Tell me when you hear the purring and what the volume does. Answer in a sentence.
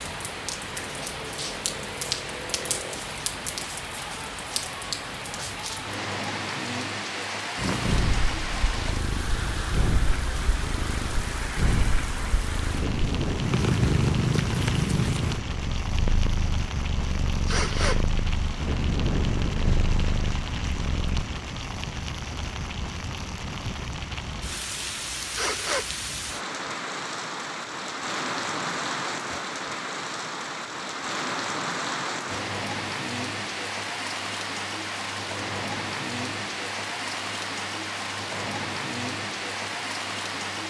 The purring can be heard from 7.5 to 21.2 s, getting louder then quieter.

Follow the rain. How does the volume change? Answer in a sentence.
The loudness of the rain stays about the same.